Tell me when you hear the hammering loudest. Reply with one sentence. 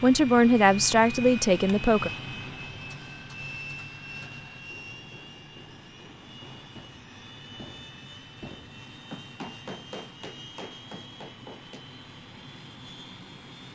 The volume of the hammering peaks at 10 seconds.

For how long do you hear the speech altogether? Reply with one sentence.
The speech can be heard for 2 seconds in total.